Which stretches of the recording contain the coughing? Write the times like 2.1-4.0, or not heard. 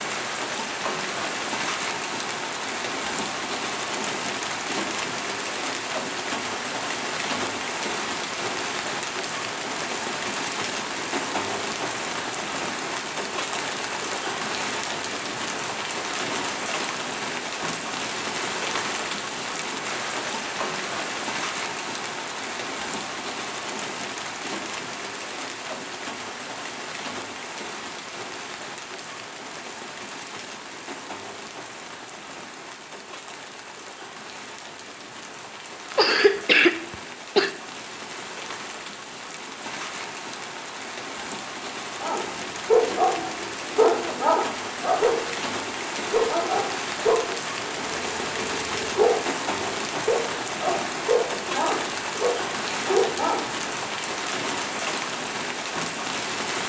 35.9-37.5.